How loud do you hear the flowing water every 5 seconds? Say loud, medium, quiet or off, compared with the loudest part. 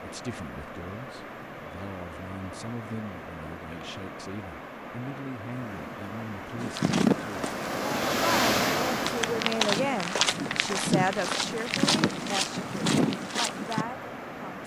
medium, loud, medium.